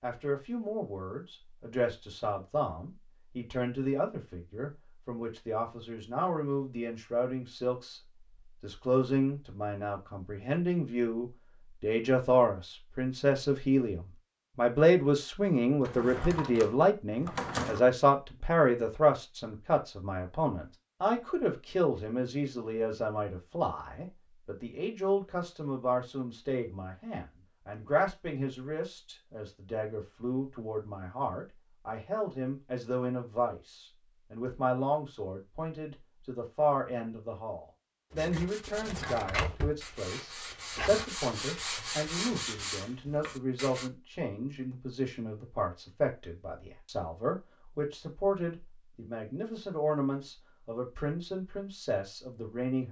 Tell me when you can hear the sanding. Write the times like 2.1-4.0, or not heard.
38.1-43.9.